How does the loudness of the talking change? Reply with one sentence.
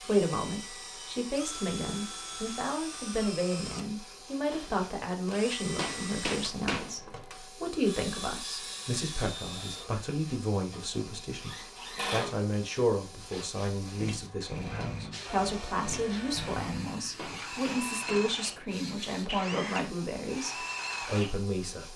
The volume of the talking stays about the same.